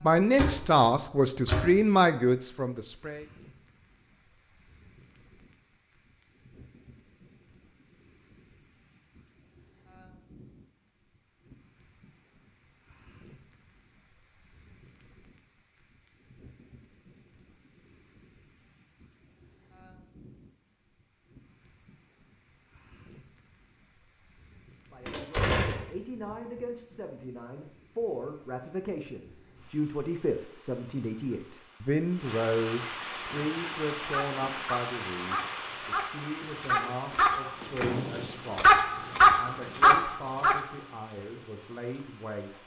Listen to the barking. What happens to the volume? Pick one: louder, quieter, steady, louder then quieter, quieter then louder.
louder.